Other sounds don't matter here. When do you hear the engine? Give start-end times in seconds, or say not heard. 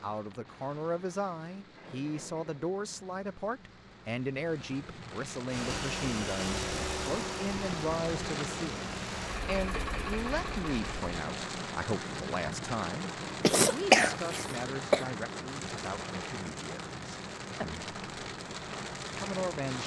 5.5-11.2.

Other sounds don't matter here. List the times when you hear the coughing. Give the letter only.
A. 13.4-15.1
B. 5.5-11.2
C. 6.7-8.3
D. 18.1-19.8
A.